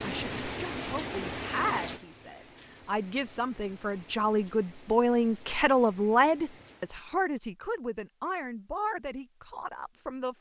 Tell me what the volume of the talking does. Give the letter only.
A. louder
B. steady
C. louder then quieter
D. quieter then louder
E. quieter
C.